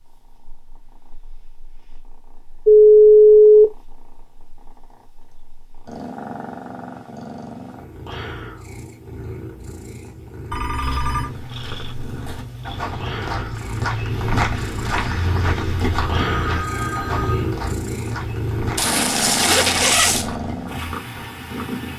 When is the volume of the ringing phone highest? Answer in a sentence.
The volume of the ringing phone peaks at 3 seconds.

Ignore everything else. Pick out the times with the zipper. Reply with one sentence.
You can hear the zipper from 18.8 to 20.3 s.